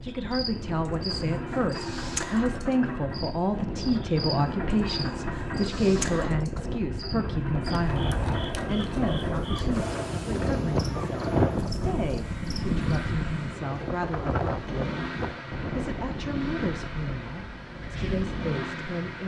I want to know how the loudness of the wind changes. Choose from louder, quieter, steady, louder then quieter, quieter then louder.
louder then quieter.